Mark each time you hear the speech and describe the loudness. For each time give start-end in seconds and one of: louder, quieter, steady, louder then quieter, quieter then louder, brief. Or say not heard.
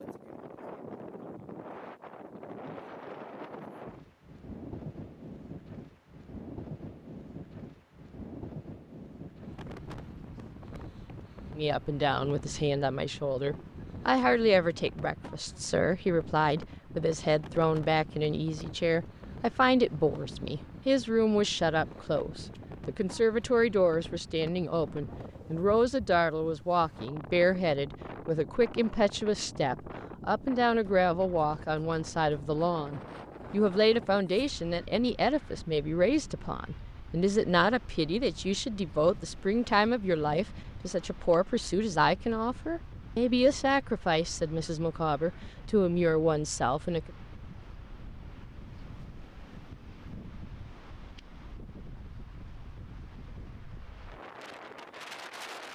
11.6-47.1 steady.